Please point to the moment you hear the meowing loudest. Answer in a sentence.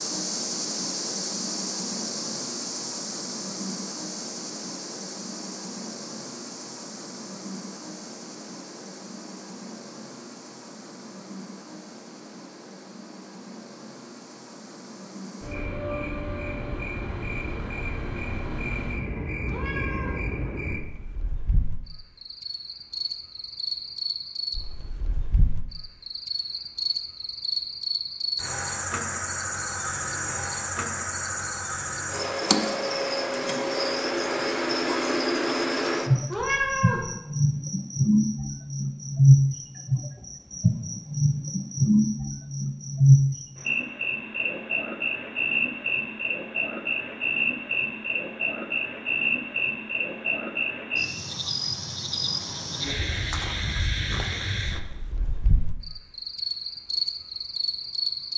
The volume of the meowing peaks at 37 seconds.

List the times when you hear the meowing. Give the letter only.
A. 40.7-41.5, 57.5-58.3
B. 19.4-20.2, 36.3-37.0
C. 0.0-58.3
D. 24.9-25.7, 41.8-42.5
B.